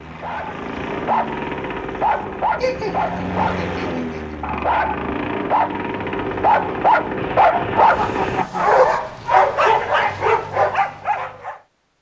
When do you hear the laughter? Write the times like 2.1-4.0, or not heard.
2.6-4.2, 7.7-8.7.